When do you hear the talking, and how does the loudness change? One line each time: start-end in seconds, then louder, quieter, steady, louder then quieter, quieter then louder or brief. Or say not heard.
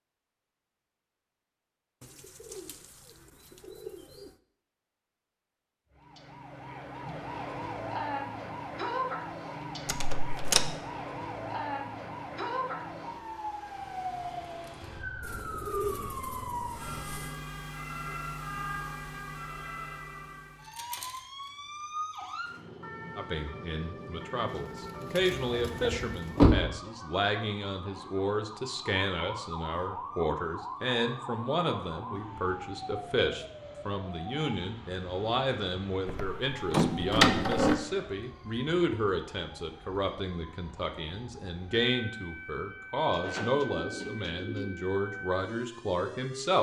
23.1-46.5 steady.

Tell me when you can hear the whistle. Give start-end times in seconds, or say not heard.
not heard.